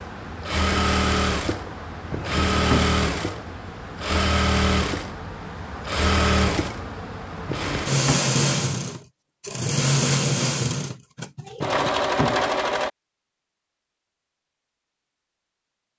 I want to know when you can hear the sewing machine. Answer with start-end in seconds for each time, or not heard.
0.0-12.9.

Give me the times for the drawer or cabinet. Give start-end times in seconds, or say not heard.
2.1-3.0, 7.5-8.2, 11.6-12.5.